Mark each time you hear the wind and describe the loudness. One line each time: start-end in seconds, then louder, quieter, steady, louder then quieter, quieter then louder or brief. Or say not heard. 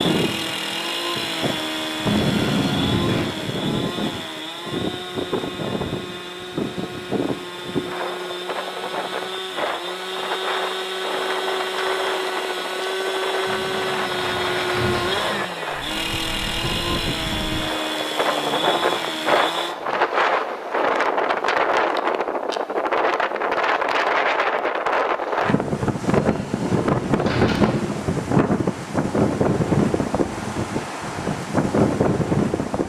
0.0-32.8 louder.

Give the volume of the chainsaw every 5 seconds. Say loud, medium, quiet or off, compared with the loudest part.
loud, medium, loud, loud, off, off, off.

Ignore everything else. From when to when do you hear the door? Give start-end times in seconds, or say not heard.
2.0-3.4, 13.4-15.4, 26.1-28.0.